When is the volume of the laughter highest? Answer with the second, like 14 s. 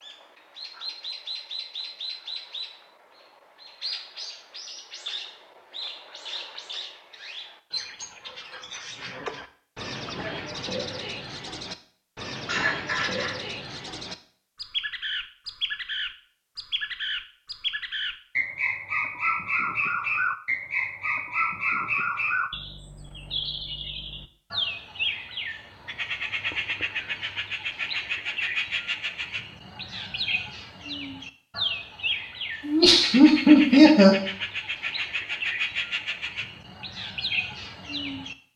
34 s.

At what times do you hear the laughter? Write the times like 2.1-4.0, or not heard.
12.4-13.3, 32.6-34.1.